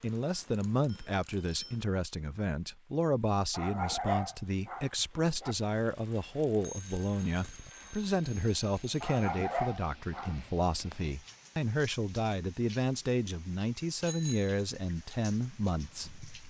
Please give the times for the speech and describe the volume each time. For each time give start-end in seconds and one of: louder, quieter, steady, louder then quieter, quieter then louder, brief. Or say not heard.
0.0-16.2 steady.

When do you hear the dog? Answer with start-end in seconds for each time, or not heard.
3.5-5.5, 9.0-10.5.